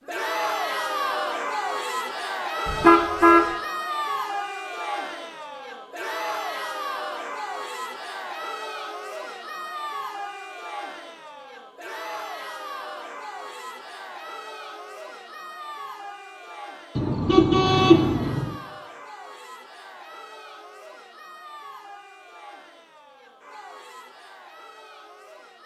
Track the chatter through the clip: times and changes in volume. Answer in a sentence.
The chatter can be heard from 0.1 to 25.6 s, getting quieter.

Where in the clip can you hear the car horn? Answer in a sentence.
You can hear the car horn from 2.6 to 3.5 s and from 16.9 to 18.6 s.